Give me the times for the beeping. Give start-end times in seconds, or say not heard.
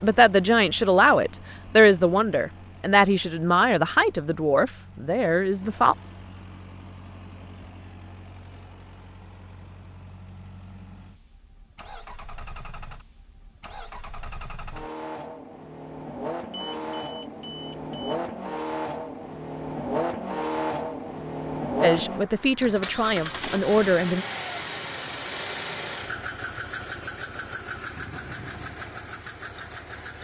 16.4-18.1.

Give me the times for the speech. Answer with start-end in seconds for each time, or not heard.
0.0-6.0, 21.8-24.2.